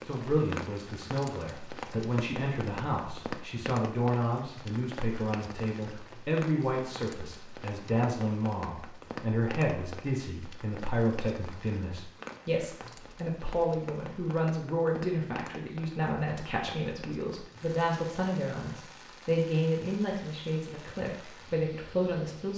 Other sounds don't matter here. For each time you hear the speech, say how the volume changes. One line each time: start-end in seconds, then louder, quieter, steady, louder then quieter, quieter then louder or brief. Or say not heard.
0.0-22.5 steady.